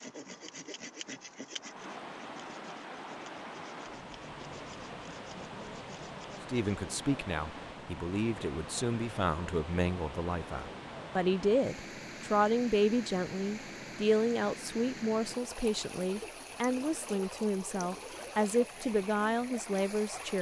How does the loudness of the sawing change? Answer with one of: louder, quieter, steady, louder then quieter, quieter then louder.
quieter.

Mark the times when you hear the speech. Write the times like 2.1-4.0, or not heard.
6.5-20.3.